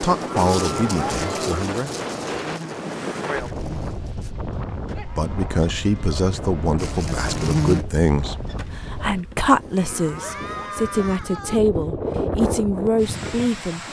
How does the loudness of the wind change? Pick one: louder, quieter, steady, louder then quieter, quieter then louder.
quieter then louder.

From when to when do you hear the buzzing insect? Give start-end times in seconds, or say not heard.
0.0-4.3, 6.8-10.9.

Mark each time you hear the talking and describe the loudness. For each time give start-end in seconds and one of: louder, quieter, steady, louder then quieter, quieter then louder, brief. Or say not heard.
0.0-1.9 brief
5.1-13.8 steady.